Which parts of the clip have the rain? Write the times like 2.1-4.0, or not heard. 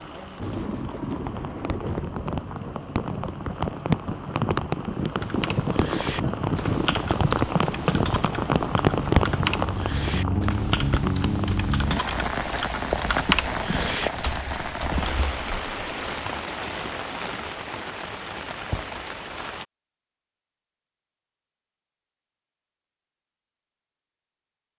0.0-19.6.